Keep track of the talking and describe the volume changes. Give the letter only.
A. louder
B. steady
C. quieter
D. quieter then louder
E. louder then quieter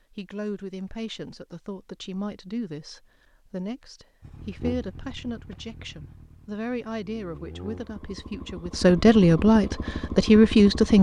A.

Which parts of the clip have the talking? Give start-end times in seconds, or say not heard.
0.1-10.9.